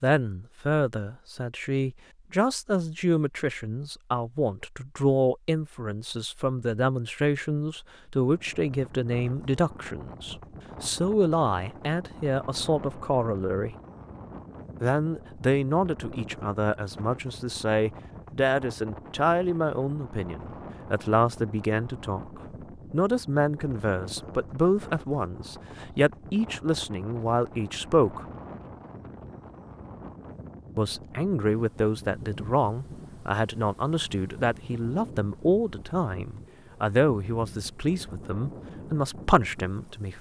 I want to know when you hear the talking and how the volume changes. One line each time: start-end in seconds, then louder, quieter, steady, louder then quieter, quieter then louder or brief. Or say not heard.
0.0-13.8 steady
14.8-28.2 steady
30.8-40.1 steady.